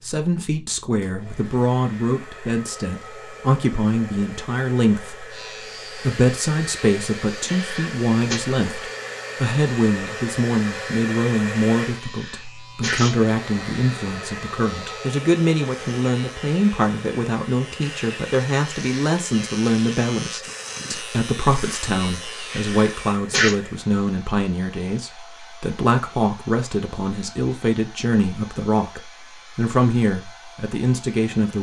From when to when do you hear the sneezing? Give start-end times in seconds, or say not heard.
7.3-8.4, 11.8-13.2, 22.4-23.6.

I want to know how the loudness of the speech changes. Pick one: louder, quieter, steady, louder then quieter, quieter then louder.
steady.